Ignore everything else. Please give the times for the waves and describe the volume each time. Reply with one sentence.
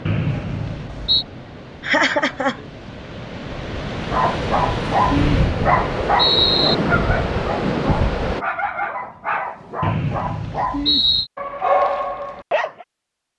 The waves can be heard from 0.0 to 8.4 s, getting louder.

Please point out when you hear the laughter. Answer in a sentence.
You can hear the laughter from 1.8 to 2.6 s.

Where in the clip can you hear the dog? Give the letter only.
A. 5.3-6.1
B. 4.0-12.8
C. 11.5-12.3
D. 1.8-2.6
B.